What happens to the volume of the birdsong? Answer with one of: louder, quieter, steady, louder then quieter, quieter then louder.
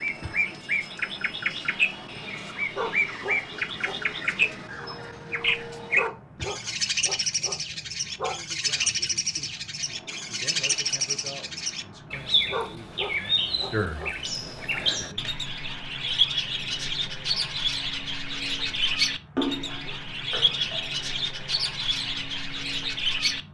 steady.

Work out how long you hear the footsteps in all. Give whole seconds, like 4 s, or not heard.
not heard.